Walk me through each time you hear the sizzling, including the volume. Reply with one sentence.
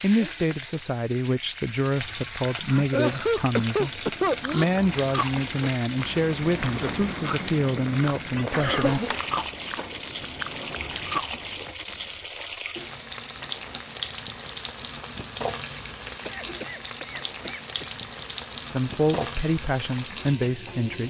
The sizzling can be heard from 0.0 to 21.0 s, at a steady volume.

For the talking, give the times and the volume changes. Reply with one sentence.
The talking can be heard from 0.0 to 9.0 s, at a steady volume; and briefly from 18.7 to 21.0 s.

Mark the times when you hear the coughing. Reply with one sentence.
The coughing can be heard from 2.6 to 4.7 s, from 8.5 to 9.2 s and from 16.2 to 17.9 s.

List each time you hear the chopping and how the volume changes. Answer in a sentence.
You can't hear the chopping here.